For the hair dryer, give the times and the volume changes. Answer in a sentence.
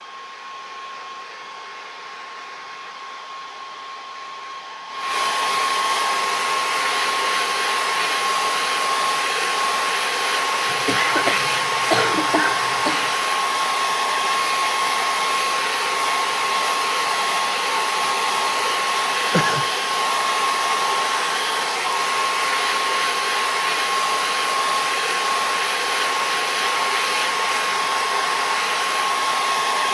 You can hear the hair dryer from 0.0 to 29.8 s, getting louder.